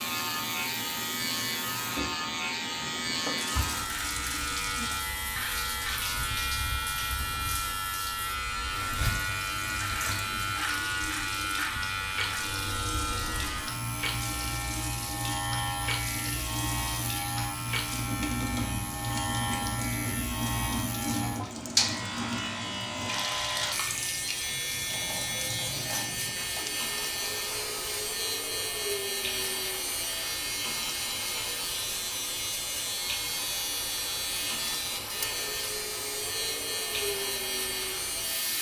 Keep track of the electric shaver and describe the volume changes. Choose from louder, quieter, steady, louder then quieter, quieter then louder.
steady.